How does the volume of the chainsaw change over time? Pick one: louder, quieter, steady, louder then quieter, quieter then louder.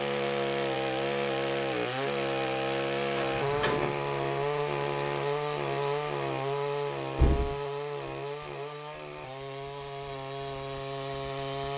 quieter.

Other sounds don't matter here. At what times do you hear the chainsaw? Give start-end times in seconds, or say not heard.
0.0-11.7.